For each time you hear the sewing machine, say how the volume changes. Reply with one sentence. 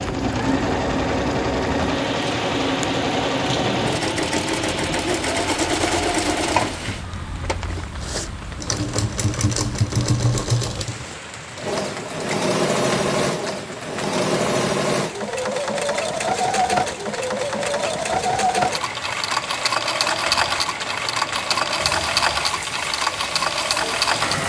You can hear the sewing machine from 0.0 to 24.4 s, at a steady volume.